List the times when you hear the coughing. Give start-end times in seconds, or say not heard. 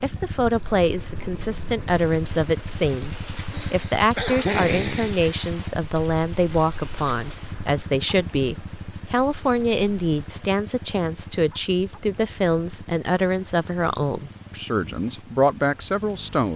3.5-5.3.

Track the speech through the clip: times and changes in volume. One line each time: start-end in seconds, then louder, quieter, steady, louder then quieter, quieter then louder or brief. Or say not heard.
0.0-16.5 steady.